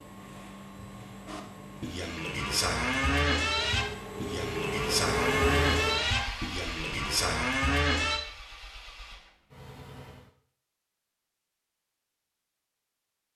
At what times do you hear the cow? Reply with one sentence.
You can hear the cow from 1.2 to 8.2 s.